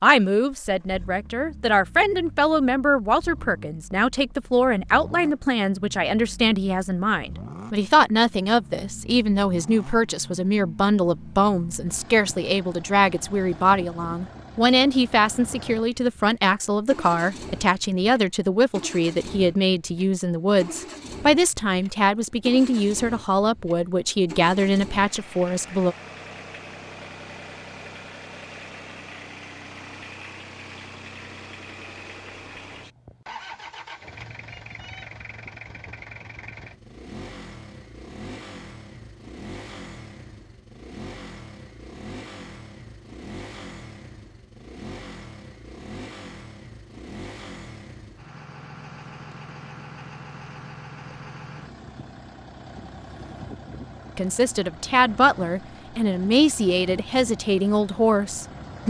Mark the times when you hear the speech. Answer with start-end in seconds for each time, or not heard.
0.0-25.9, 54.1-58.8.